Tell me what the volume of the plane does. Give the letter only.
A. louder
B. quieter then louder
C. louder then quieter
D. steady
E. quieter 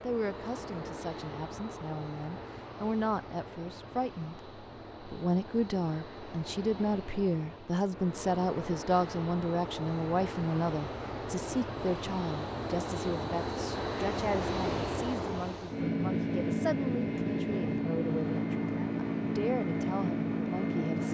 A.